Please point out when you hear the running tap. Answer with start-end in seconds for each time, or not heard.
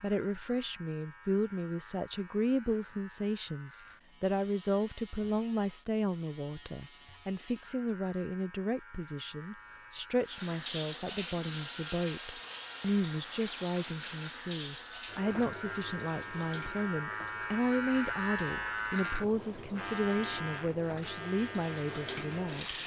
10.2-22.8.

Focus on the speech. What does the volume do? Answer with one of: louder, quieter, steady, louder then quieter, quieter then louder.
steady.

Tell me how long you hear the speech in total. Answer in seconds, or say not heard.
23 s.